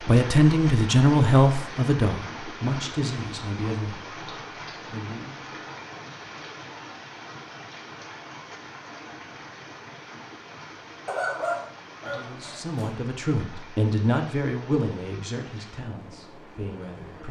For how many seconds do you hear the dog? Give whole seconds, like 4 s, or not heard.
2 s.